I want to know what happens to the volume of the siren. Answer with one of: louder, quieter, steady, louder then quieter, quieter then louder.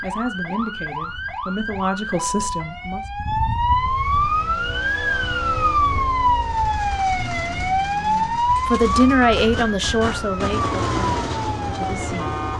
louder then quieter.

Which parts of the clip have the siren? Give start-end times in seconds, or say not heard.
0.0-12.5.